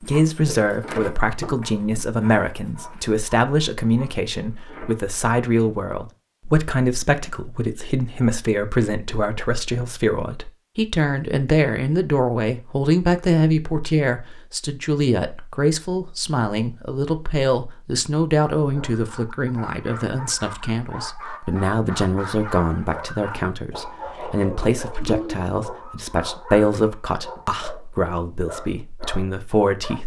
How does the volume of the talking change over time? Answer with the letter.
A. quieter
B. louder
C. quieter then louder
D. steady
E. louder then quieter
D.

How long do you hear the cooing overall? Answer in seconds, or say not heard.
2 s.